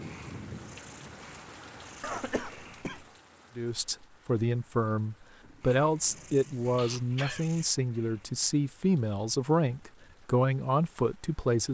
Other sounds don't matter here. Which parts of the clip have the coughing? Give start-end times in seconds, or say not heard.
2.0-3.0, 6.8-7.5.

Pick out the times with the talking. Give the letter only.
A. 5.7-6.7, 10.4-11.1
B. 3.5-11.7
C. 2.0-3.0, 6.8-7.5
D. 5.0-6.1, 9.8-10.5
B.